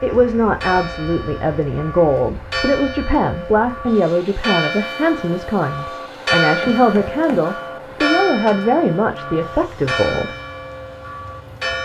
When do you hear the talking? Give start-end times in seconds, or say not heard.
0.0-10.3.